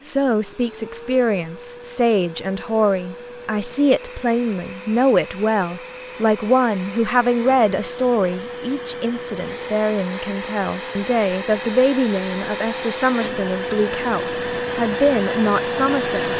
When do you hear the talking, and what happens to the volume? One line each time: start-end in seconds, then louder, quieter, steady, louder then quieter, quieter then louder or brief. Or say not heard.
0.0-16.3 steady.